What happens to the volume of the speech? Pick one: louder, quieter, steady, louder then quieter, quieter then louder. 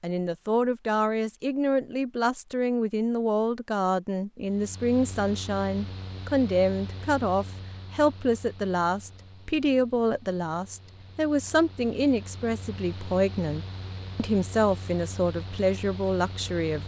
steady.